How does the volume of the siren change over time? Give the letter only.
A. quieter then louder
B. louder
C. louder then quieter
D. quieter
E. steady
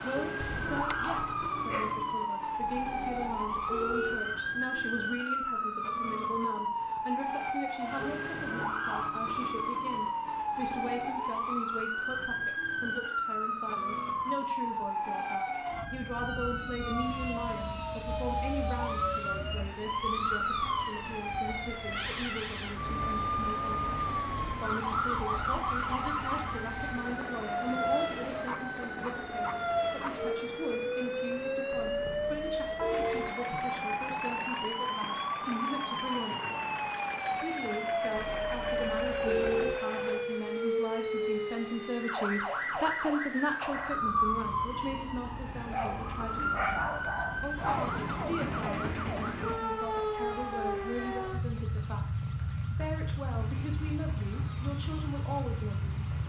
E.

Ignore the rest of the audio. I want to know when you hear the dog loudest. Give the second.
47 s.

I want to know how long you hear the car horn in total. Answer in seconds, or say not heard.
5 s.